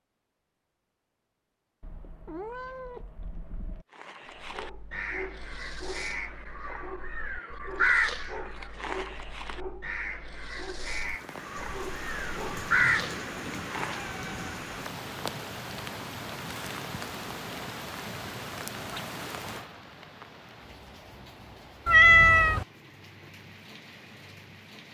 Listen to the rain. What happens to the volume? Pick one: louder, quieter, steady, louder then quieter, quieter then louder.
quieter.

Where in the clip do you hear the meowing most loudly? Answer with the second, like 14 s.
22 s.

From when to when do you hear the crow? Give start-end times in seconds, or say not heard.
4.0-14.2.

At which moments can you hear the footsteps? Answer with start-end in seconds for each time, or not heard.
not heard.